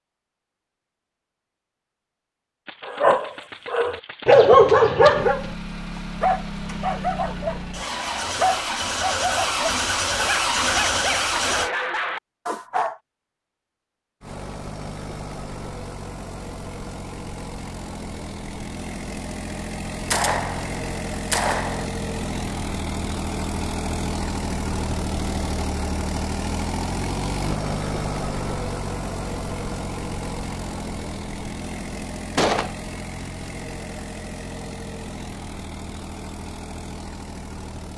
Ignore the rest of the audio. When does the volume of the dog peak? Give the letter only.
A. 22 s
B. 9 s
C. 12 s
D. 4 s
D.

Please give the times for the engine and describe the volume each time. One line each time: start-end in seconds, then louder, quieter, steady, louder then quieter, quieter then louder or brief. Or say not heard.
5.2-11.7 louder
14.2-37.9 louder then quieter.